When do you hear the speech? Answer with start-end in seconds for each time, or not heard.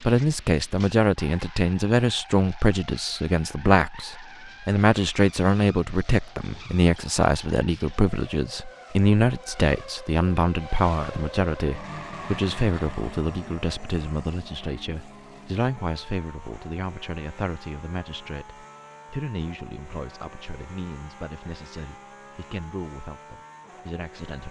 0.0-24.4.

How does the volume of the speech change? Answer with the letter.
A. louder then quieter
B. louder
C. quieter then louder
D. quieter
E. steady
D.